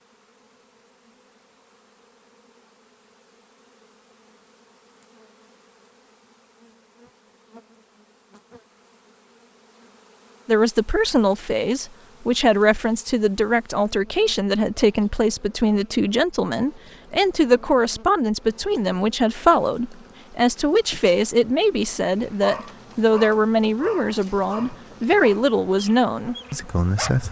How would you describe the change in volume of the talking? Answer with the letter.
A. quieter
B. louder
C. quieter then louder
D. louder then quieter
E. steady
E.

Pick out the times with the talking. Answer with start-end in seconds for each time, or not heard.
10.4-27.2.